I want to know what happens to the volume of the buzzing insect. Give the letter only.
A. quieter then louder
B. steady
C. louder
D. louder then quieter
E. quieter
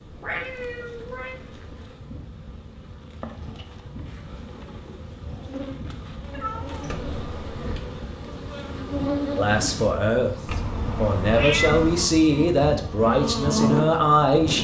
C.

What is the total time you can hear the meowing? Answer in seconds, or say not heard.
4 s.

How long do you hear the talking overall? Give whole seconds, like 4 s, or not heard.
5 s.